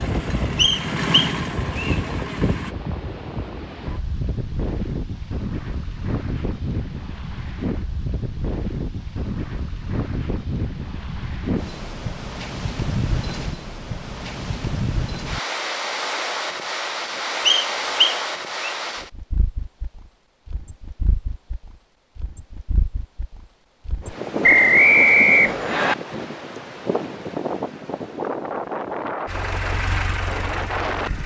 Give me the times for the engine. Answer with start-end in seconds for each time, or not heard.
0.0-2.8, 29.2-31.2.